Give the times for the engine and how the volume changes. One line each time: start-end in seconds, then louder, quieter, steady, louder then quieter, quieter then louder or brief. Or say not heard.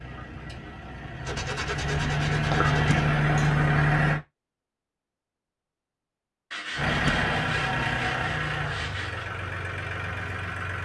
0.0-4.2 louder
6.8-10.8 quieter.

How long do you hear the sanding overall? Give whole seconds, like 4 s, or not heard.
5 s.